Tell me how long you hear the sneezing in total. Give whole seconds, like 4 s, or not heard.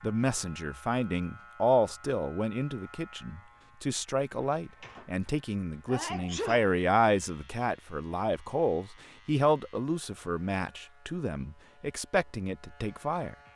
2 s.